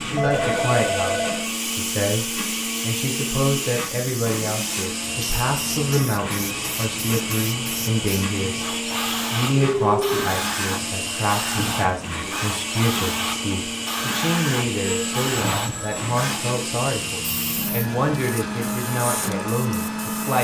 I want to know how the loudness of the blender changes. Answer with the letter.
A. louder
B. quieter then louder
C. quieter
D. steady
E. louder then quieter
D.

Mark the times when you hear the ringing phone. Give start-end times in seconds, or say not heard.
0.1-1.4, 9.6-10.2, 14.8-16.1.